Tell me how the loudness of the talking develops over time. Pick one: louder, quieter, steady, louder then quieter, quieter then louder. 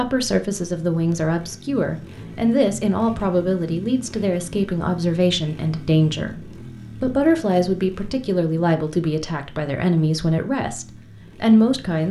steady.